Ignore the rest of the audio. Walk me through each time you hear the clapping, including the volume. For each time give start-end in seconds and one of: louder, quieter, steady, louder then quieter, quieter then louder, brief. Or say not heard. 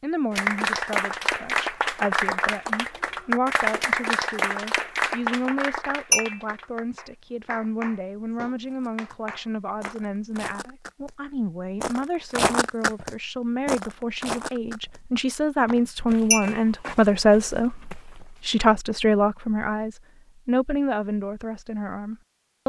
0.3-9.9 quieter.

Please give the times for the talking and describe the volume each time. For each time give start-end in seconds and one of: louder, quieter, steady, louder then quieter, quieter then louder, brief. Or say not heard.
0.0-22.6 louder.